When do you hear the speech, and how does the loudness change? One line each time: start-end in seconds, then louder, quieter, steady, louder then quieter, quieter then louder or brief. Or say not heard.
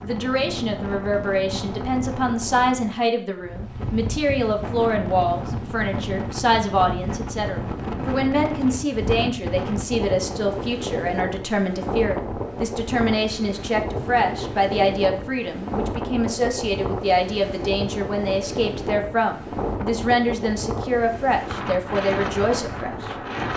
0.0-23.1 steady.